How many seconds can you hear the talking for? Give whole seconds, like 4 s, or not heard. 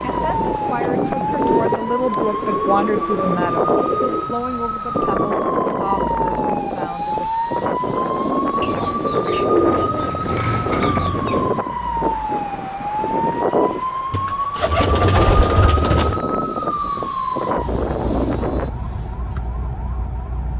7 s.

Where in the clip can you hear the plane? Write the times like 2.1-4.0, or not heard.
0.0-18.7.